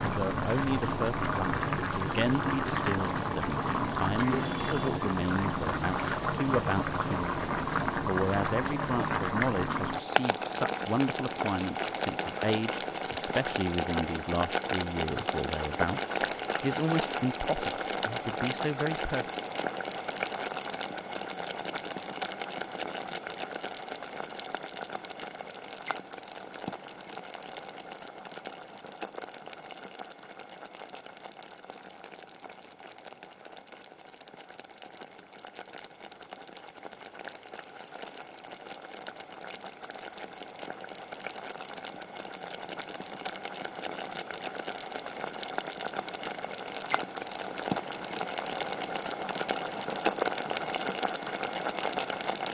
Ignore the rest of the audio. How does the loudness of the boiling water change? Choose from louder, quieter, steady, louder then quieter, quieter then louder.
quieter then louder.